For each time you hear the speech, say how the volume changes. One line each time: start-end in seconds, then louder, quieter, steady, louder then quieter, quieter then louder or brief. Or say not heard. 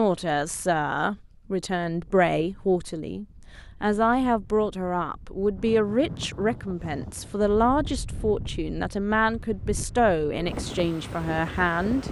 0.0-12.0 steady.